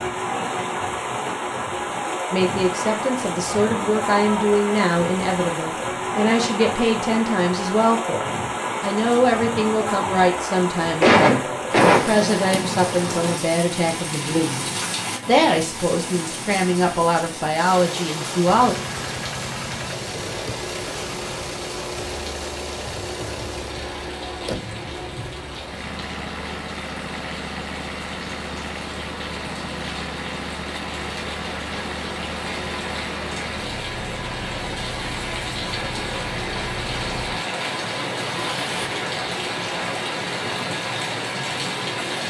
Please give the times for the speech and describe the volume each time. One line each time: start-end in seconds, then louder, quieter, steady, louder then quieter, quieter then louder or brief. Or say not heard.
2.3-18.8 steady.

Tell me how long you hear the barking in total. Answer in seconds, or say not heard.
not heard.